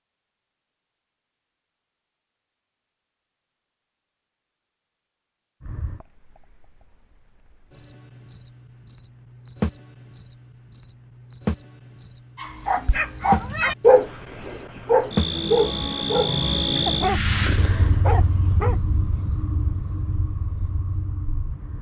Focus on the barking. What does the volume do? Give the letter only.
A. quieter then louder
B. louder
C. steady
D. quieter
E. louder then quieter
D.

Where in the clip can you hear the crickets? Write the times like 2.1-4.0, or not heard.
5.6-21.7.